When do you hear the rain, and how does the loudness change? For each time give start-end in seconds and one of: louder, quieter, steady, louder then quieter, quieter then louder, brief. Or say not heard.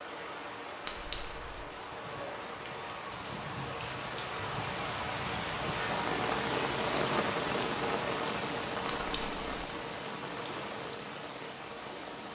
0.0-12.2 louder then quieter.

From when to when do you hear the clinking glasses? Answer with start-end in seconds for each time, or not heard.
0.8-1.6, 8.8-9.4.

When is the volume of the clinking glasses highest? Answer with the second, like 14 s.
1 s.